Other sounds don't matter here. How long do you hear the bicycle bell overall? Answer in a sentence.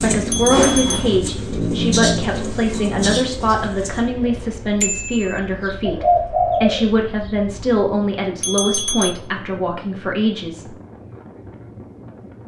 You can hear the bicycle bell for 2 seconds altogether.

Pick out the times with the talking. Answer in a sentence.
You can hear the talking from 0.0 to 10.7 s.